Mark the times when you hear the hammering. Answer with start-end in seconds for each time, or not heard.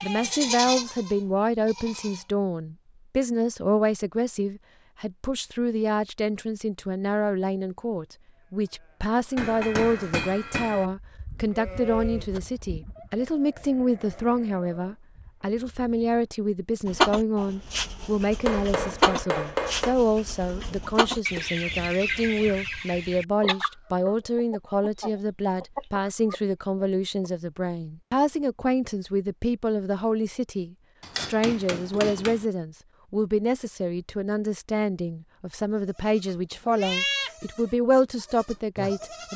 9.3-10.8, 18.4-19.9, 31.0-32.5.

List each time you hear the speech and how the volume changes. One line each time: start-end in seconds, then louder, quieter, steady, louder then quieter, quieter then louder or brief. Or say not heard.
0.0-39.3 steady.